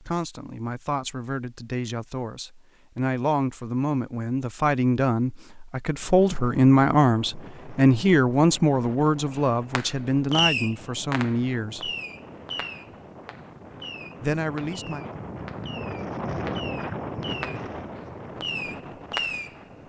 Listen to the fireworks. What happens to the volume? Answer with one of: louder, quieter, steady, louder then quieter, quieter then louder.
quieter then louder.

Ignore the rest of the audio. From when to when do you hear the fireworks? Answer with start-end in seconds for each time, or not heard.
9.8-19.8.